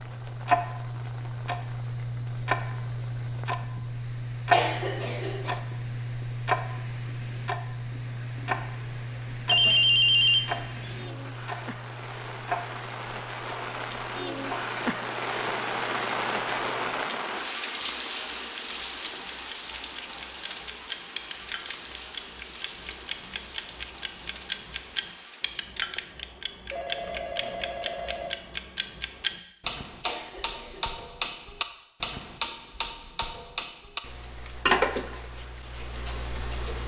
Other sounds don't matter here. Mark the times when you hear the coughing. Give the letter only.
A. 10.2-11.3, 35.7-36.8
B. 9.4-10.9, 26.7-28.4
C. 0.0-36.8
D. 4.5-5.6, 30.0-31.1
D.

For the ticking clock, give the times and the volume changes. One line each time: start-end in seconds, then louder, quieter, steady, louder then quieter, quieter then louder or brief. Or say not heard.
0.0-36.8 quieter then louder.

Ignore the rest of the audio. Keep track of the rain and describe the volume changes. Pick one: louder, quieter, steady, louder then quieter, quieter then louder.
louder then quieter.